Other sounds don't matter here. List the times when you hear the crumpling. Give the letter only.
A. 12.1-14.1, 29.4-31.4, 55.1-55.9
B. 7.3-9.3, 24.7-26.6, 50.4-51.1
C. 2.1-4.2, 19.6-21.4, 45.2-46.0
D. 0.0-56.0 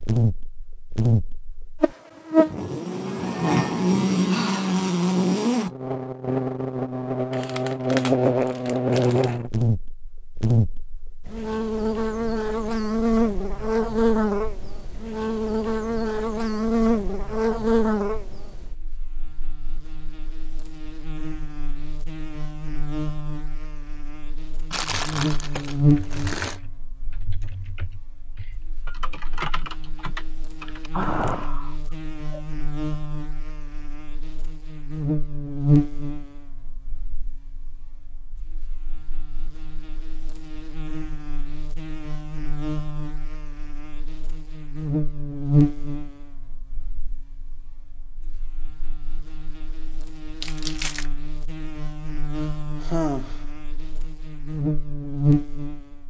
B.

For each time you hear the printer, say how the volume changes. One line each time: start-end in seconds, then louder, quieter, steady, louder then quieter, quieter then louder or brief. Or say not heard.
not heard.